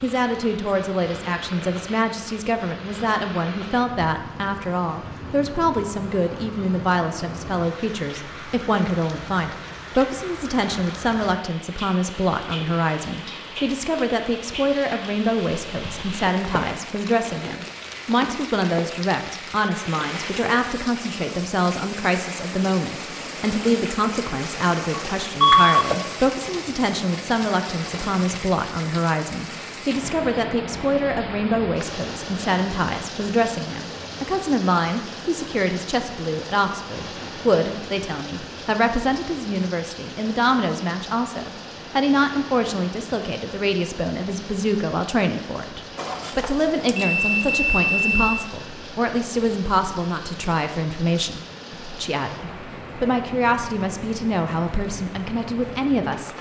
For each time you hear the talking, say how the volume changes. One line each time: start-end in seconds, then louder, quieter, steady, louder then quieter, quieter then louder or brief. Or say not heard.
0.0-56.3 steady.